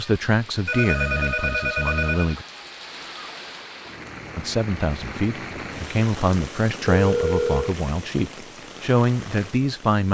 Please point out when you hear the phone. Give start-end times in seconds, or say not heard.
0.7-2.4, 6.8-7.8.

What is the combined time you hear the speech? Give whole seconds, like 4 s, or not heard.
8 s.